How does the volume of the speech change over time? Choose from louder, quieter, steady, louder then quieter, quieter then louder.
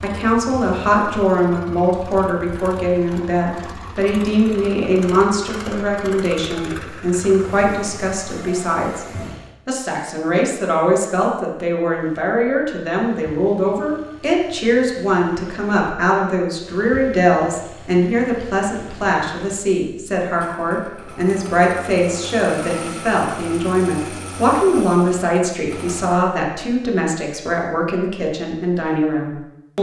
steady.